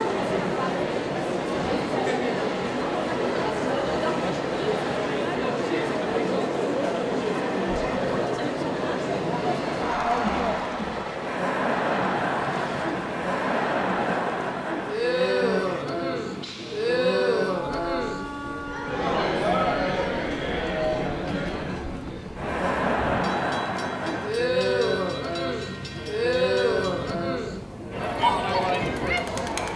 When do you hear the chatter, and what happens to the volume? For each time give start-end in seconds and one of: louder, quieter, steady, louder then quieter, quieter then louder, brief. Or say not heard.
0.0-29.7 steady.